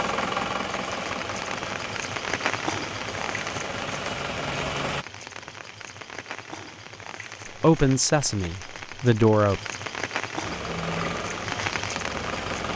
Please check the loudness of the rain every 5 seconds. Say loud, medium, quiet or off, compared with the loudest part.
loud, medium, loud.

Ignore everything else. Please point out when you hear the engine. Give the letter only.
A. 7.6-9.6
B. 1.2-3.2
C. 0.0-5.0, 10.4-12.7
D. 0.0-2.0
C.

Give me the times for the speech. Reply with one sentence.
The speech can be heard from 7.6 to 9.6 s.